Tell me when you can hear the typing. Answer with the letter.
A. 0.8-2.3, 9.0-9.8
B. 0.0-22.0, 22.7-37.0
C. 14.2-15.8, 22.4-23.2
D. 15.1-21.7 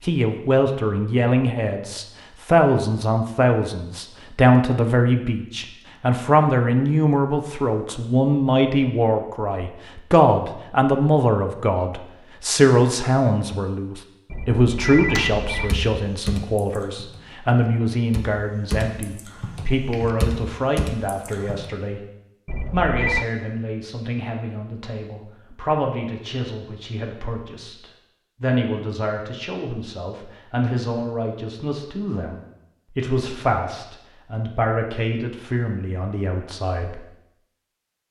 D.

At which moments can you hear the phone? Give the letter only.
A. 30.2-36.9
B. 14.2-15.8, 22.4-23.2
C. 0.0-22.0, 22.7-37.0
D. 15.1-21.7
B.